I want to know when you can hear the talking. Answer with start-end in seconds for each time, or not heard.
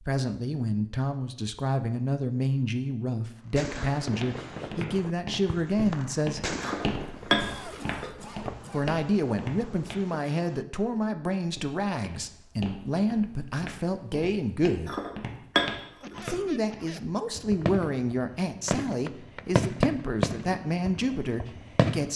0.0-6.5, 8.7-14.9, 16.2-22.1.